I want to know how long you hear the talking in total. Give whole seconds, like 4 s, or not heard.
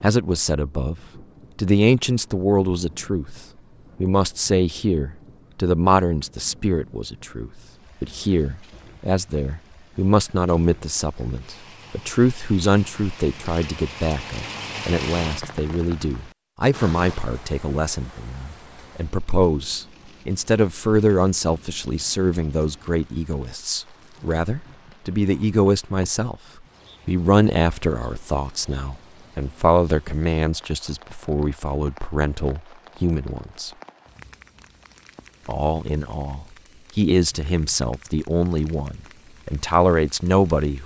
38 s.